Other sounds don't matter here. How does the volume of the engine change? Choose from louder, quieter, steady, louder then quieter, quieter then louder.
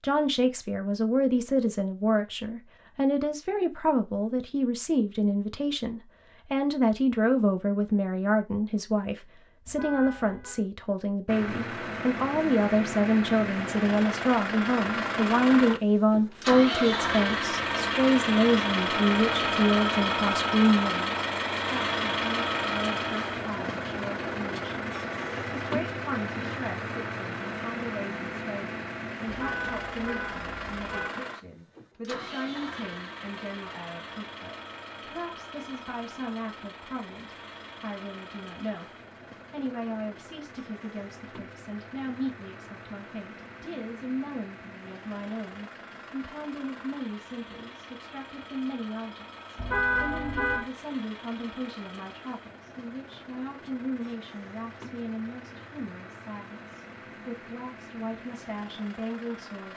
quieter.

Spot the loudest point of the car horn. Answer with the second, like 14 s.
50 s.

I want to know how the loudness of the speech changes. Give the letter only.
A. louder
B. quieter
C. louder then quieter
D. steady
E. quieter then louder
B.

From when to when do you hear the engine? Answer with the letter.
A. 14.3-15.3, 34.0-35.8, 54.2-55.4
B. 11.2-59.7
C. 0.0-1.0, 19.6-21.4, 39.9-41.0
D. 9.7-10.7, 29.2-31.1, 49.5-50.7
B.